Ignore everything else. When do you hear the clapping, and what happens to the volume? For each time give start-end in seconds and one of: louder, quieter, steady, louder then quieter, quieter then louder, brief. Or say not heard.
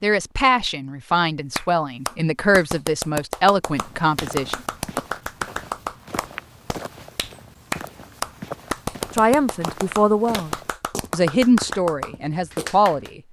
1.6-13.1 steady.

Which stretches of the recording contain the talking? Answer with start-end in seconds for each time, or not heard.
0.0-5.0, 9.2-13.2.